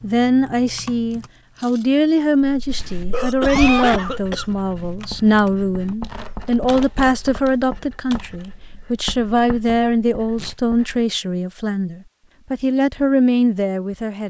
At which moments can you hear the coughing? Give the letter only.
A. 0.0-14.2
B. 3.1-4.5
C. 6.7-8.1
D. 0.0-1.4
B.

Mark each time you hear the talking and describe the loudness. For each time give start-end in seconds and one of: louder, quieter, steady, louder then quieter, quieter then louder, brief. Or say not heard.
0.0-14.2 steady.